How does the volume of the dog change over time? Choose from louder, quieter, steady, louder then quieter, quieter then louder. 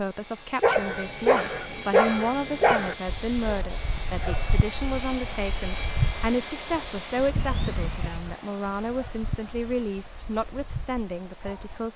quieter.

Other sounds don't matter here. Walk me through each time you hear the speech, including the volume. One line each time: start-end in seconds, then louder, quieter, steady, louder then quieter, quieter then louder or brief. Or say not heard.
0.0-11.9 steady.